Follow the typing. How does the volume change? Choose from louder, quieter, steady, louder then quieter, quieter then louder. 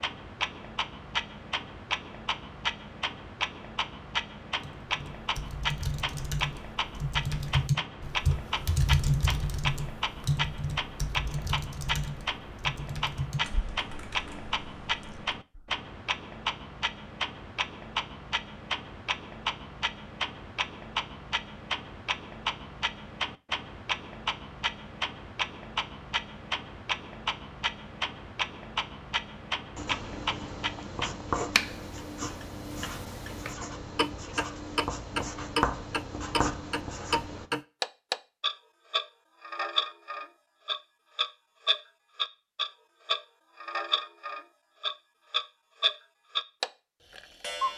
louder then quieter.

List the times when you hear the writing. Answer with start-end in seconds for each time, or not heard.
29.8-37.5.